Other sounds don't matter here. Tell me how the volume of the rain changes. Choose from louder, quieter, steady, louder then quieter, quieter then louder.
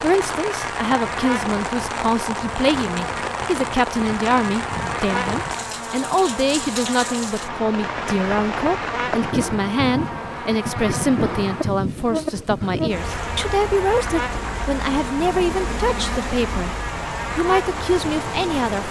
steady.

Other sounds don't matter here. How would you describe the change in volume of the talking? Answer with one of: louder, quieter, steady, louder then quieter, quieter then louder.
steady.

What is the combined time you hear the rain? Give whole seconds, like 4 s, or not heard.
19 s.